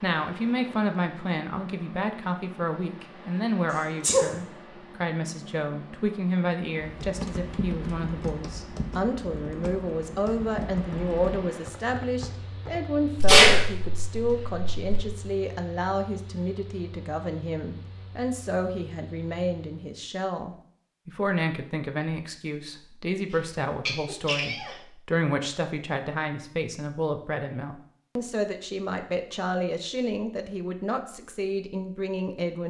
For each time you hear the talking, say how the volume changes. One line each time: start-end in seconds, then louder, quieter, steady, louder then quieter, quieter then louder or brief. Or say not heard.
0.0-32.6 steady.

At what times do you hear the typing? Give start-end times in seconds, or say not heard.
6.8-12.8.